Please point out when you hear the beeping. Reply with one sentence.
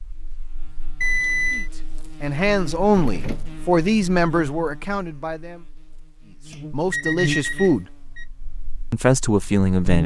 You can hear the beeping from 1.0 to 1.7 s and from 6.5 to 8.2 s.